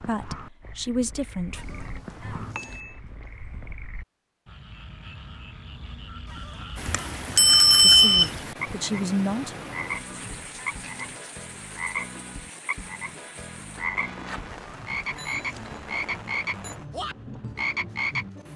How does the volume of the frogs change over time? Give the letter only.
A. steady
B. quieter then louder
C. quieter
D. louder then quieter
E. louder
E.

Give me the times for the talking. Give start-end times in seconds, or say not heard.
0.1-1.6, 7.8-9.6.